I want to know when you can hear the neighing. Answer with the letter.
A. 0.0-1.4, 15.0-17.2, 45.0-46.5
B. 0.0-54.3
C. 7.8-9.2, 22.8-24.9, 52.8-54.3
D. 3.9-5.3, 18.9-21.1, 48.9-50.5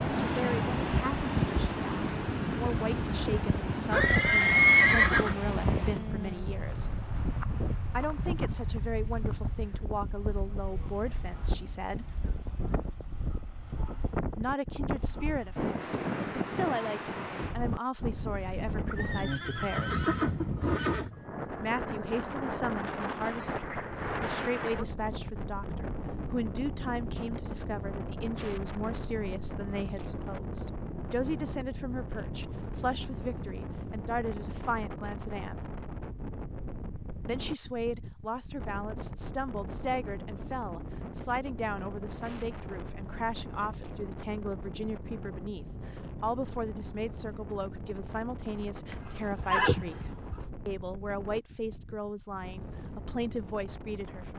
D.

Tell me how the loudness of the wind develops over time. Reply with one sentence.
The loudness of the wind goes down.